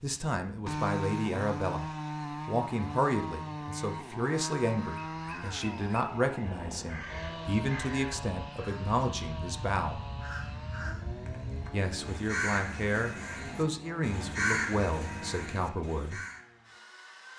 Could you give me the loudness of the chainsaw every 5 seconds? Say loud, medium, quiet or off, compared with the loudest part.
loud, medium, medium, quiet.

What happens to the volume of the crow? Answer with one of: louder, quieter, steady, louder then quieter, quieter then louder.
louder.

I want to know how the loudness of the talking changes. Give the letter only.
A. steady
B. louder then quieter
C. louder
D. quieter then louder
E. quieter
A.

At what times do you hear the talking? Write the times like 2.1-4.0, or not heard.
0.0-10.0, 11.7-16.2.